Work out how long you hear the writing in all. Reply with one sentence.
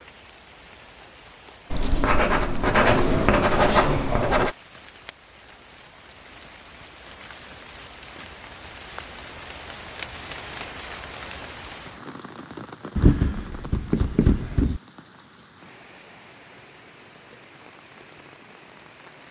The writing can be heard for 5 seconds in total.